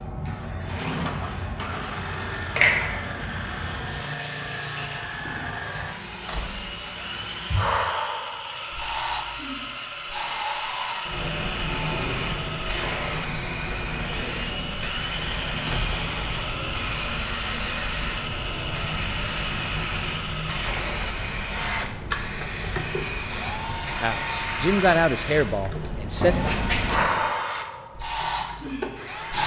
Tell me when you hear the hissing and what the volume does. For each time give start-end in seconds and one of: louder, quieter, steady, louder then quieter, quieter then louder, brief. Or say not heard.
0.0-29.4 steady.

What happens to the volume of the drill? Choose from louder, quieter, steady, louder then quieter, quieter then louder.
steady.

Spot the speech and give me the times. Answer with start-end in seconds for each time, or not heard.
23.9-26.4.